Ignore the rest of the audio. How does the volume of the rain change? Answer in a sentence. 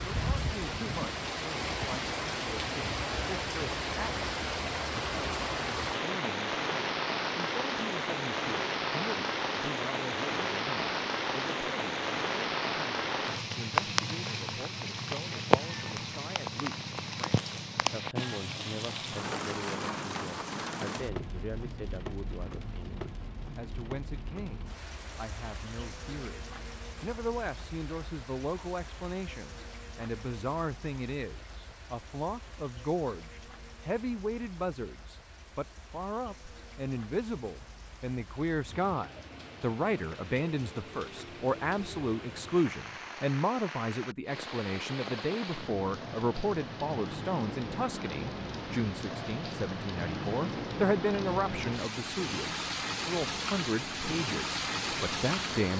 The loudness of the rain goes down, then up.